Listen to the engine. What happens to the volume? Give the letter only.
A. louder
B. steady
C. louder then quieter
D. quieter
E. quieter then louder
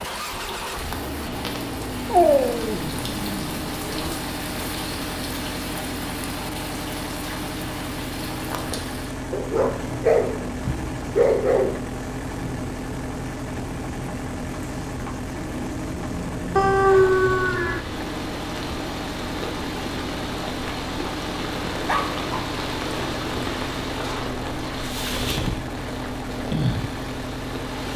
B.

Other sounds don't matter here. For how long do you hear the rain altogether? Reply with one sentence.
You can hear the rain for 28 seconds altogether.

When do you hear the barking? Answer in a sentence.
The barking can be heard from 2.0 to 4.2 s, from 9.3 to 11.8 s, from 16.6 to 17.8 s and from 21.9 to 22.5 s.